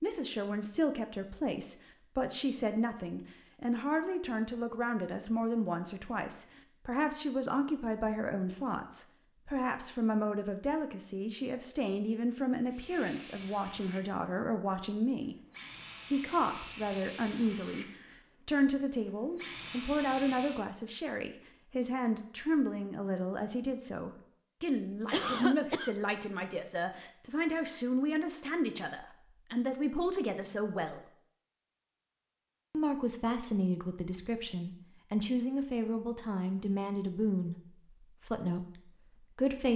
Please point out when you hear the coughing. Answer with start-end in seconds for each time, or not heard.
25.1-25.9.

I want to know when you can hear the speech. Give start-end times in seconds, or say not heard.
0.0-15.3, 16.1-31.1, 32.7-39.7.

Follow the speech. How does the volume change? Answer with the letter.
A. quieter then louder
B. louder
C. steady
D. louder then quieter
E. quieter
C.